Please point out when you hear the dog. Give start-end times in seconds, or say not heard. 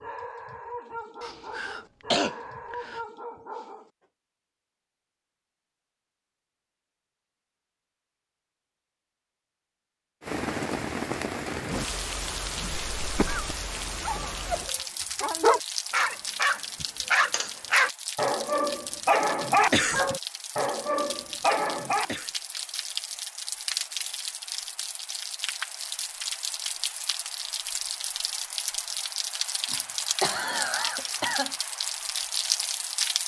0.0-3.9, 14.0-22.3.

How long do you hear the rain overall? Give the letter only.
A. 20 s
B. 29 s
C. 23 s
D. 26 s
C.